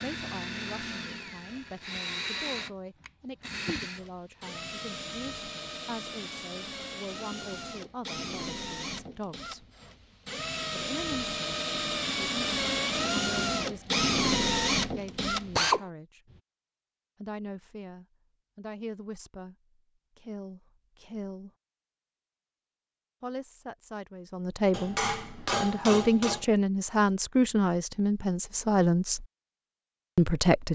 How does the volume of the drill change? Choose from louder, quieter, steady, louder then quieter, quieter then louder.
louder.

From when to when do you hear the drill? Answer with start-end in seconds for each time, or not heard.
0.0-15.8.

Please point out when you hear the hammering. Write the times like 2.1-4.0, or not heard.
24.7-26.4.